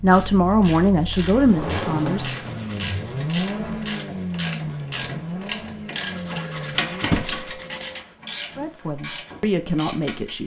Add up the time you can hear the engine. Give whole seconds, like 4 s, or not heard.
7 s.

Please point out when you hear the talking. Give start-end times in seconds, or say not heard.
0.0-2.3, 8.6-10.4.